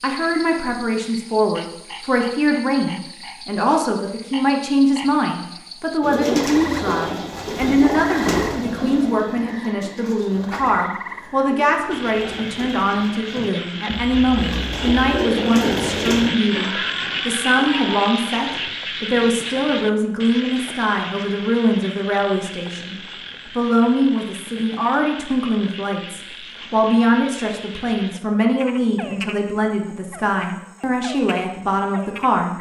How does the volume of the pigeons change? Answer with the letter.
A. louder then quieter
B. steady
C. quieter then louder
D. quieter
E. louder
C.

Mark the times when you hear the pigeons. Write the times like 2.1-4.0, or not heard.
6.0-16.3.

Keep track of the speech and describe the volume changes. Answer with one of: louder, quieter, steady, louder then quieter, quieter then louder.
steady.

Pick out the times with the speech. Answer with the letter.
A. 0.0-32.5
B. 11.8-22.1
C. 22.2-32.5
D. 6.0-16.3
A.